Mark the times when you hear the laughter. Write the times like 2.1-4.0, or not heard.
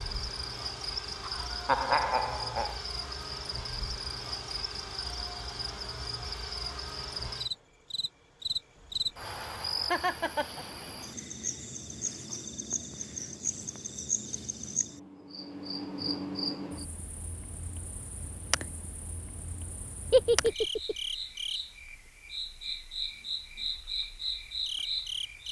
1.2-2.8, 9.9-10.7, 20.1-20.9.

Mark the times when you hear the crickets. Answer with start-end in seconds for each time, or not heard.
0.0-25.4.